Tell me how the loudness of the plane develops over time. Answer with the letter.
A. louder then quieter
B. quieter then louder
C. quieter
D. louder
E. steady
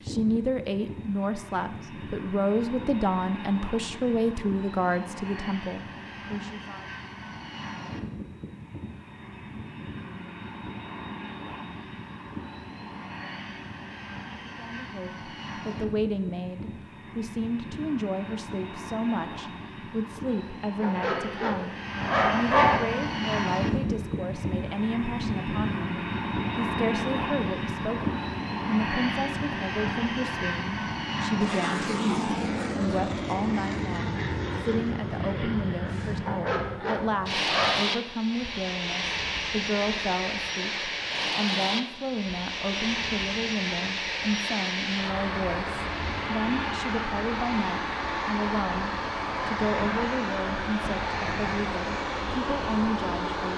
D.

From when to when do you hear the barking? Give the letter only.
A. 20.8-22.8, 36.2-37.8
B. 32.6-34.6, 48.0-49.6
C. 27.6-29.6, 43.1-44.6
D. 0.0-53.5
A.